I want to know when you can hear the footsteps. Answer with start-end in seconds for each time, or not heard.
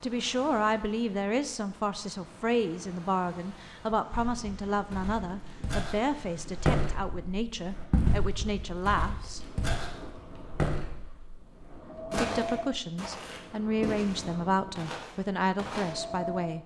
4.1-15.9.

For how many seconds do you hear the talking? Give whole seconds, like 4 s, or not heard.
14 s.